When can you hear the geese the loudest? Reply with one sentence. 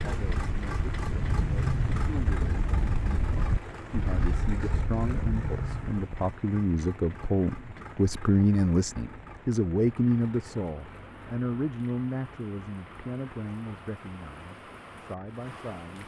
The volume of the geese peaks at 2 seconds.